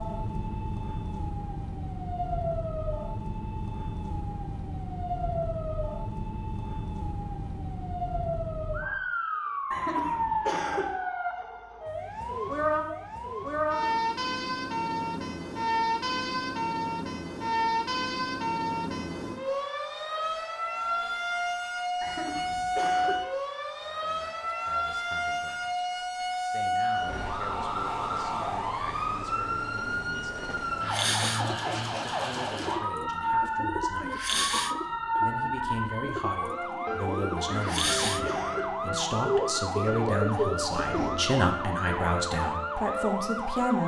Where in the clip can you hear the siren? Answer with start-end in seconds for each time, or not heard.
0.0-43.8.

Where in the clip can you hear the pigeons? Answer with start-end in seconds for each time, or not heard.
30.8-41.3.